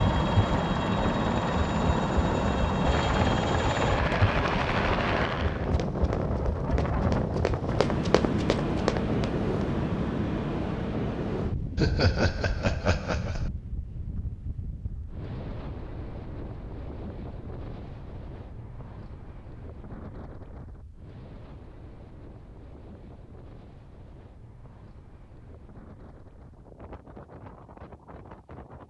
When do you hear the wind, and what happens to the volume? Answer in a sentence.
You can hear the wind from 0.0 to 28.8 s, getting quieter.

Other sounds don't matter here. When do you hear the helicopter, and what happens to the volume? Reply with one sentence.
You can hear the helicopter from 0.0 to 5.8 s, at a steady volume.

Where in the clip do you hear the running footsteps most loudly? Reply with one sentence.
The volume of the running footsteps peaks at 9 seconds.